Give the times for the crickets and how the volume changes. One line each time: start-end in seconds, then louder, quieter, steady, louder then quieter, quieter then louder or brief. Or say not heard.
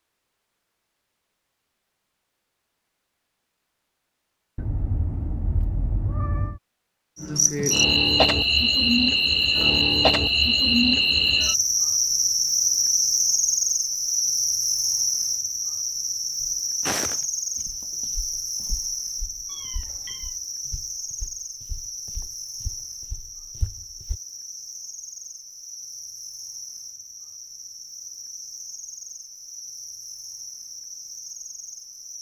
7.2-32.1 quieter.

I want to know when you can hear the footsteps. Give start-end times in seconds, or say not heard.
16.4-24.2.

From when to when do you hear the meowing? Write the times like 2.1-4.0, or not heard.
4.5-6.6, 19.4-20.4.